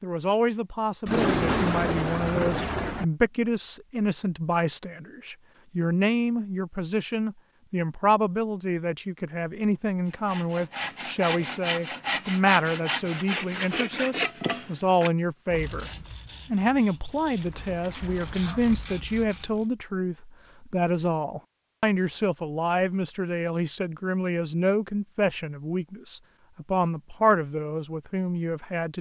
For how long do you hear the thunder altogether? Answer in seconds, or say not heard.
2 s.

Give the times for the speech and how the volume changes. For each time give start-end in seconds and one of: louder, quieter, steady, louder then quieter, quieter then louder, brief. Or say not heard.
0.0-15.9 steady
16.5-28.9 steady.